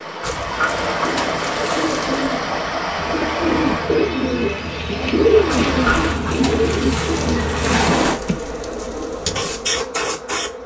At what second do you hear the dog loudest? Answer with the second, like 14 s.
8 s.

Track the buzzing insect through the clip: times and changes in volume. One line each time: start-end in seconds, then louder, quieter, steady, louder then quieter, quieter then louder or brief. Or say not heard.
2.9-10.6 louder.